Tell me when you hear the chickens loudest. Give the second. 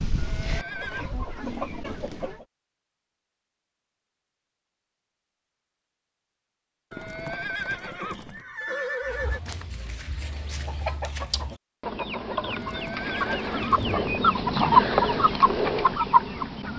15 s.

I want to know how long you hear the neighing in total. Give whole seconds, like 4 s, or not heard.
5 s.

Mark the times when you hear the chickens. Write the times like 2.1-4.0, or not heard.
0.0-2.5, 9.1-16.7.